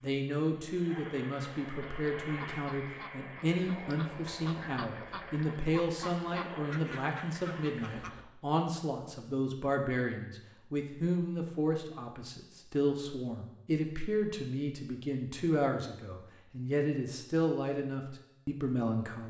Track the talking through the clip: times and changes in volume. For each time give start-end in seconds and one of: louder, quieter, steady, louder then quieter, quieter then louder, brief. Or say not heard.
0.0-19.2 steady.